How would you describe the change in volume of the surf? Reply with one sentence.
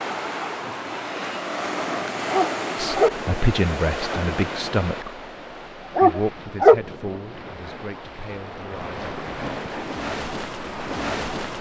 The volume of the surf goes down, then up.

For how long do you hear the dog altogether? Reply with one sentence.
The dog can be heard for 2 seconds in total.